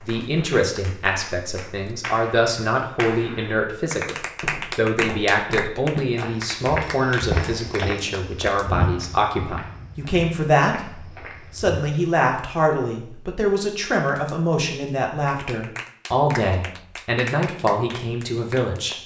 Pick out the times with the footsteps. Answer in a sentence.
The footsteps can be heard from 4.2 to 11.8 s.